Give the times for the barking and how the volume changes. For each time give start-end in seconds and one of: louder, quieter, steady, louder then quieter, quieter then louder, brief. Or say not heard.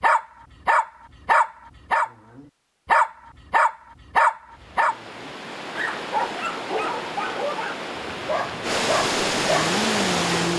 0.0-10.5 quieter.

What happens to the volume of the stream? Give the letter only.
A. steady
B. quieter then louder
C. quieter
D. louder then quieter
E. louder
E.